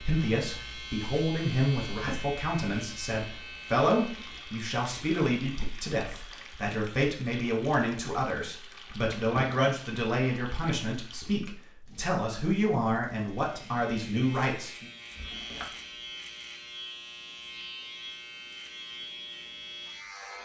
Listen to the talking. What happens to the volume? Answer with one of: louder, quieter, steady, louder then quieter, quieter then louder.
steady.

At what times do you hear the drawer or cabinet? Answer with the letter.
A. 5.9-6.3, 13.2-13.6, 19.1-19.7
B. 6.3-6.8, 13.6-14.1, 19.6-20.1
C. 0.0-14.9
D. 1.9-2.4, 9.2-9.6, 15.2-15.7
D.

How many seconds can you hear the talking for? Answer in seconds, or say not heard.
15 s.